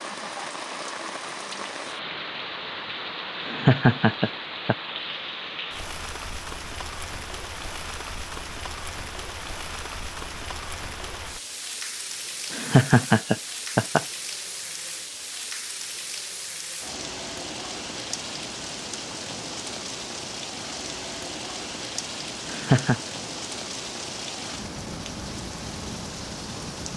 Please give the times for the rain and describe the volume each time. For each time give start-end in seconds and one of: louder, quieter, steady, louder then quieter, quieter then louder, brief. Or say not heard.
0.0-26.9 steady.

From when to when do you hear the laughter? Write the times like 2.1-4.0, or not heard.
3.5-4.8, 12.5-14.1, 22.4-23.0.